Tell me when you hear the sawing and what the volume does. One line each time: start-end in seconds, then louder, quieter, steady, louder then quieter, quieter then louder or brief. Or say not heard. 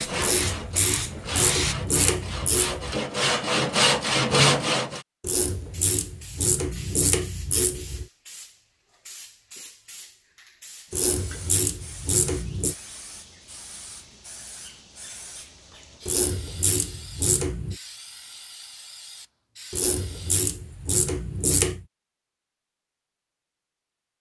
0.0-5.0 louder.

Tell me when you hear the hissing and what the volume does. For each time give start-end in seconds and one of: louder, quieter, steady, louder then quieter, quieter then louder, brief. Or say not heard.
0.0-1.8 brief
5.5-20.4 steady.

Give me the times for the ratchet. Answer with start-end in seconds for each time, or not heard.
0.1-3.0, 5.2-8.1, 10.9-12.8, 16.1-17.8, 19.7-21.9.